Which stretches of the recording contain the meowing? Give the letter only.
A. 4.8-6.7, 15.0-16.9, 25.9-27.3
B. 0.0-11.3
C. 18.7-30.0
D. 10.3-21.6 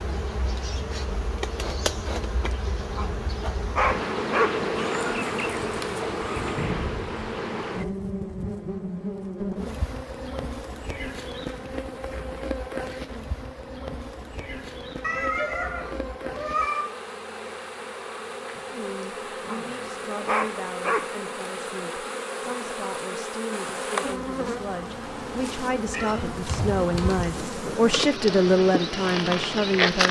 A.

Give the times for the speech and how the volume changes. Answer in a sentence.
The speech can be heard from 18.7 to 30.0 s, getting louder.